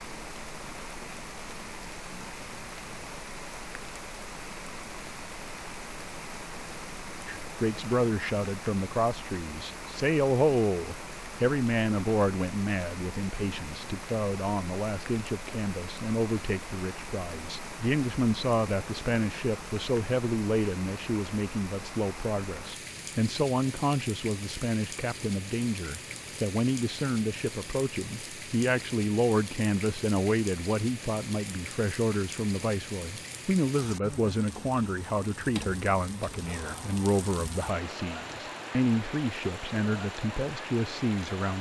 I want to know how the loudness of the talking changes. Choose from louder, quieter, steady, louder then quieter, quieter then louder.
steady.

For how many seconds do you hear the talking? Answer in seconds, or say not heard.
34 s.